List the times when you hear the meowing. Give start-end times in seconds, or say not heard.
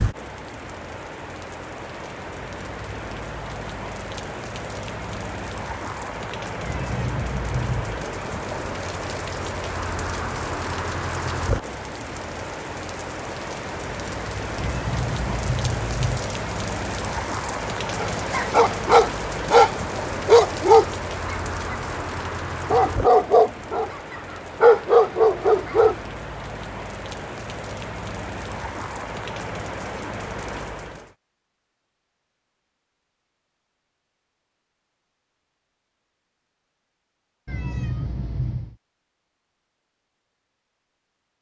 6.6-8.1, 14.6-16.2, 37.5-38.8.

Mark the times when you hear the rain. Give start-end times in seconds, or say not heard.
0.0-31.1.